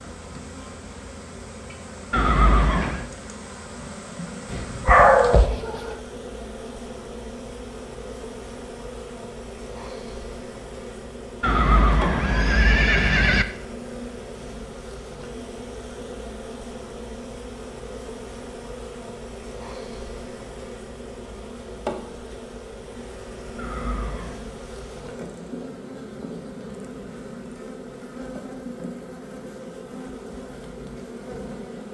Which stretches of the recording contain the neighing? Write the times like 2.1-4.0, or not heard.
2.1-3.0, 11.4-13.4, 23.6-24.4.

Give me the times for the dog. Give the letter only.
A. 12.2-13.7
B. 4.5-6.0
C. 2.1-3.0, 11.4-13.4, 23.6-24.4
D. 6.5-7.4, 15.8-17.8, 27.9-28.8
B.